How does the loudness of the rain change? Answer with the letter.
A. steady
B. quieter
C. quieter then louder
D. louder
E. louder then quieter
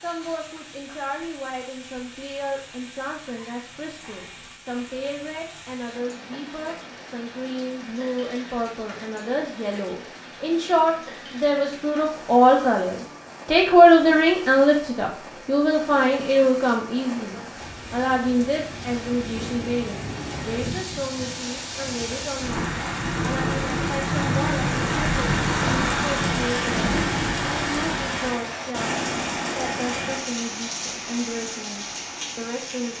D.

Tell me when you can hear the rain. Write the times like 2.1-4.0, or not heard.
0.0-32.9.